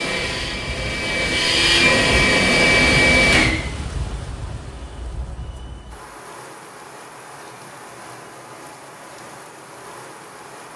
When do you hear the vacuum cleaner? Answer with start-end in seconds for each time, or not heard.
0.0-3.5.